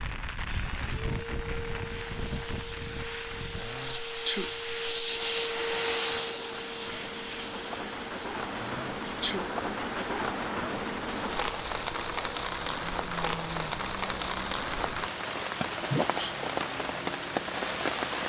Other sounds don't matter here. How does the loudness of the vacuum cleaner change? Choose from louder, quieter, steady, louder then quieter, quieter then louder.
louder then quieter.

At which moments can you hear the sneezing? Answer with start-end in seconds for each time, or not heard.
3.5-4.5, 8.6-9.4, 15.8-16.4.